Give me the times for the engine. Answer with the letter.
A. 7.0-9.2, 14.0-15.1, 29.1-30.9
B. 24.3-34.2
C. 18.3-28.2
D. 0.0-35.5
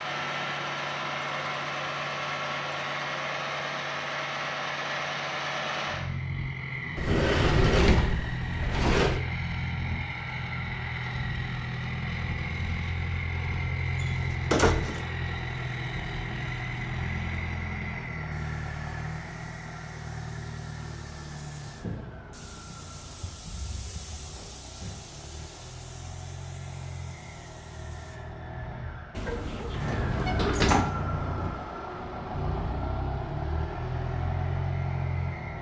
D.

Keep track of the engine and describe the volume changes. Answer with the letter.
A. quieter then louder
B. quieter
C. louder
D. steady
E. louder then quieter
A.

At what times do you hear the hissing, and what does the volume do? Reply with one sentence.
The hissing can be heard from 18.3 to 28.2 s, getting louder then quieter.